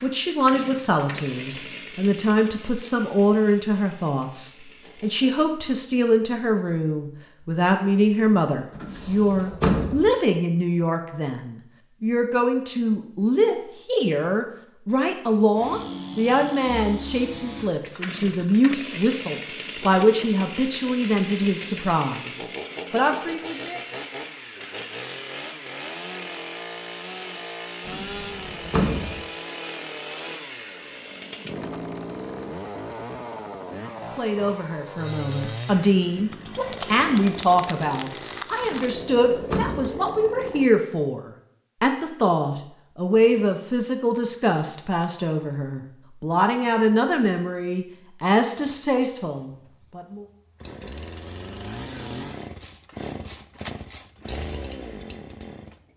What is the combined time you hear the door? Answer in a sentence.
You can hear the door for 4 seconds altogether.